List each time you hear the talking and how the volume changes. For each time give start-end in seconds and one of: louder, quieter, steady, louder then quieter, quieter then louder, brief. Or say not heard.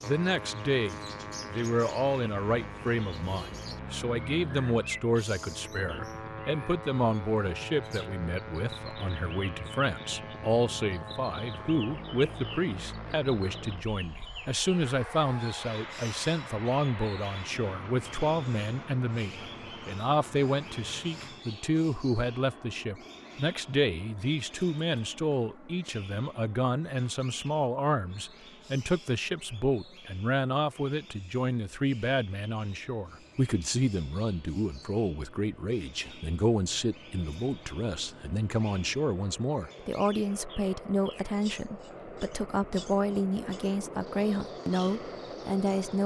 0.0-46.0 steady.